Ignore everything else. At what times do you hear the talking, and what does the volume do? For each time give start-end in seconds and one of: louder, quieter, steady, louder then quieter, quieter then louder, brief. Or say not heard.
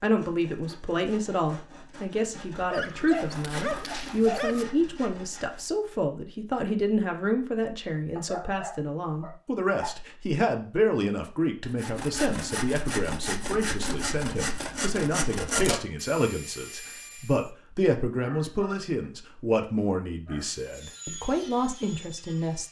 0.0-22.6 steady.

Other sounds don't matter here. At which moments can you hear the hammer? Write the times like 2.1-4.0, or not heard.
not heard.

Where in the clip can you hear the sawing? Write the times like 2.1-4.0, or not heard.
0.0-5.8, 11.7-17.5, 20.4-22.6.